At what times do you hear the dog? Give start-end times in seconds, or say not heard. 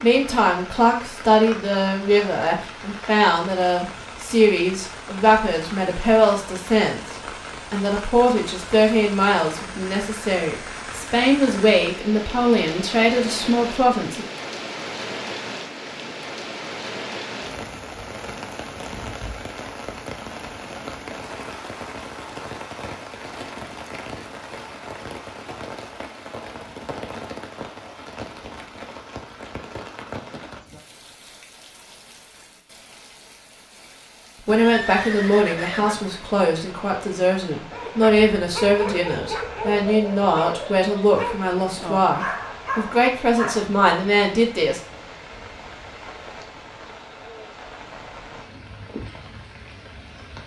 37.7-43.8.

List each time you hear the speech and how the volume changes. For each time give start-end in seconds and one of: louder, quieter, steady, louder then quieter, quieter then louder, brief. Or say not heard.
0.0-14.2 steady
34.4-44.8 steady.